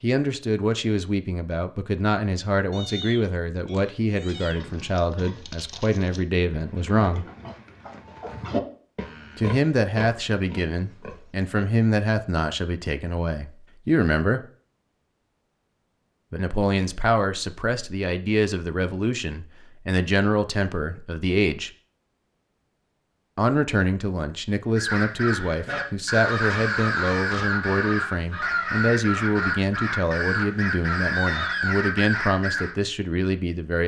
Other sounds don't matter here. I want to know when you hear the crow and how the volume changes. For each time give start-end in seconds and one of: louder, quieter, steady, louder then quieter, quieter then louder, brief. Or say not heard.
24.8-32.8 steady.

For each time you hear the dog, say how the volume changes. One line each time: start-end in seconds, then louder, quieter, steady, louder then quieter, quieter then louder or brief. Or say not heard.
not heard.